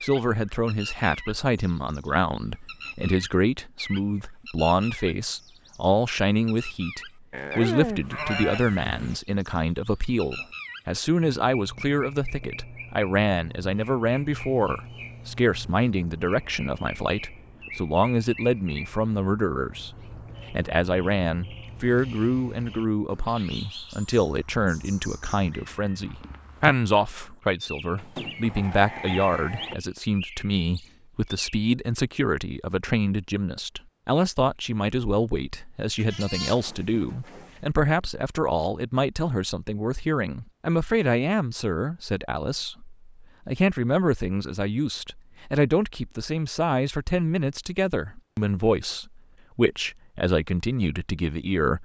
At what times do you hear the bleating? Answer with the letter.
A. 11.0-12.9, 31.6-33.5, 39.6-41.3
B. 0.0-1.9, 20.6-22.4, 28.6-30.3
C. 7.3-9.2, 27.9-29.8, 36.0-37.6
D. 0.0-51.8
C.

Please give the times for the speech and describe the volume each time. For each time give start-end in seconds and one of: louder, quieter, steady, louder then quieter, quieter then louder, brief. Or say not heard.
0.0-51.8 steady.